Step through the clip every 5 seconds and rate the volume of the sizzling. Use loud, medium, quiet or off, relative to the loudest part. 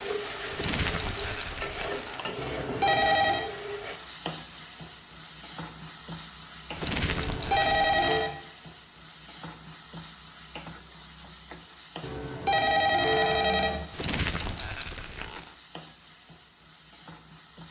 loud, medium, medium, quiet.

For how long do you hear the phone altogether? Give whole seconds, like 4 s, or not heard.
4 s.